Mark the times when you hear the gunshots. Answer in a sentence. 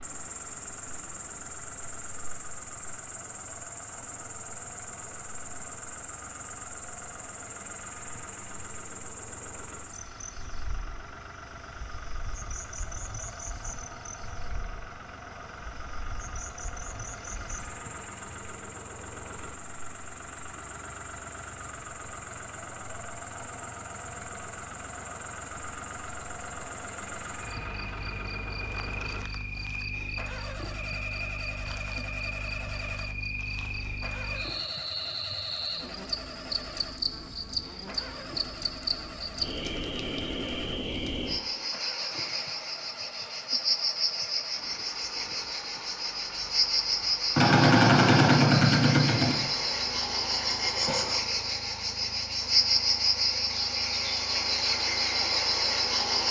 The gunshots can be heard from 47.4 to 49.4 s.